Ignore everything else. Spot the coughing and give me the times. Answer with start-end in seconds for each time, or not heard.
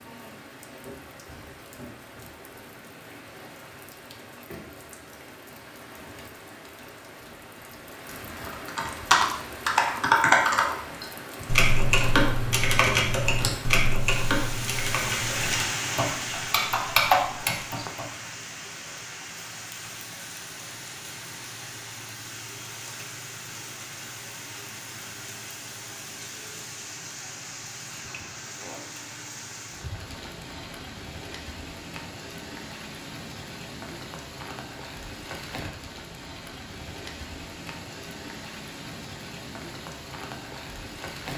not heard.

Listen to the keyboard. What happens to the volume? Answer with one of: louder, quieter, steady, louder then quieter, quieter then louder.
quieter then louder.